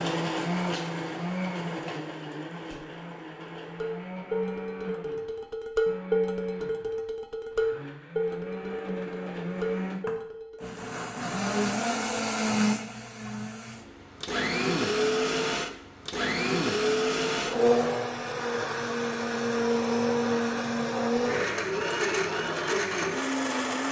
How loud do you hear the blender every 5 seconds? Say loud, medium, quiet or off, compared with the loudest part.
medium, medium, loud, loud, loud.